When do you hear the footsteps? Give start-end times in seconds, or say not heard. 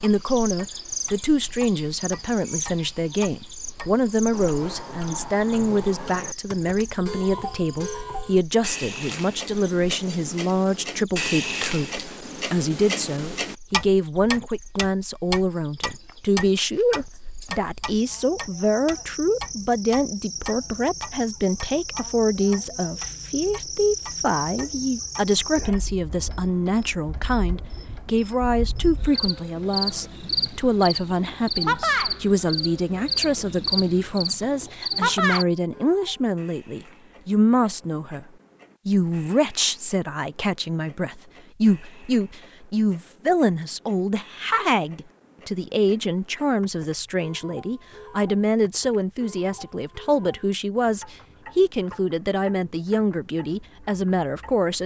not heard.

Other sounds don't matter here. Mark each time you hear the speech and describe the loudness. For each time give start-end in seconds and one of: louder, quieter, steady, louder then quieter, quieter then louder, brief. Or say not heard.
0.0-38.2 steady
38.9-54.8 steady.